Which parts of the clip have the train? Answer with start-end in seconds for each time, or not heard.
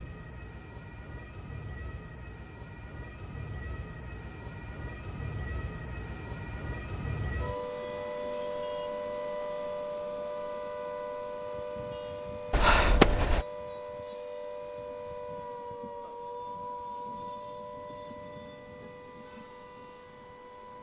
not heard.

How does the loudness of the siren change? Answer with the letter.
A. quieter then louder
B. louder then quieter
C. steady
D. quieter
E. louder
B.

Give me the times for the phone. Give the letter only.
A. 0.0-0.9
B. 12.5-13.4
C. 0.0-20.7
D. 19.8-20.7
B.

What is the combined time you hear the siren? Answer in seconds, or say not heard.
21 s.